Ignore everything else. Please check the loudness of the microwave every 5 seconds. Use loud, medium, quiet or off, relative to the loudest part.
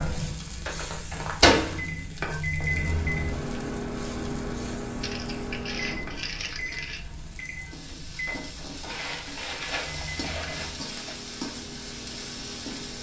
loud, medium, quiet.